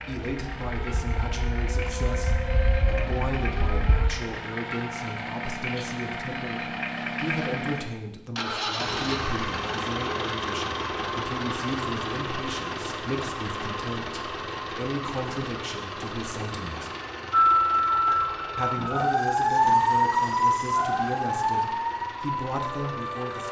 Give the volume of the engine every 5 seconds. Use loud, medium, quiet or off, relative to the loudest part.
medium, loud, loud, medium, medium.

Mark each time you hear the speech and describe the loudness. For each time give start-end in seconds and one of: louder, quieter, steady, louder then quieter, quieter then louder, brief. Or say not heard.
0.1-16.9 steady
18.6-23.4 quieter then louder.